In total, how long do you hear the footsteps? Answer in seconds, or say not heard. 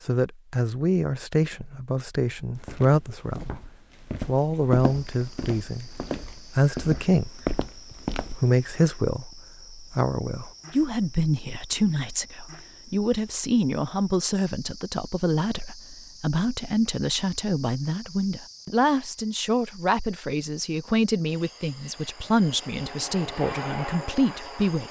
6 s.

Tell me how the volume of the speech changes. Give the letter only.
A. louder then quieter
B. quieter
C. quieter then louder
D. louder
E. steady
E.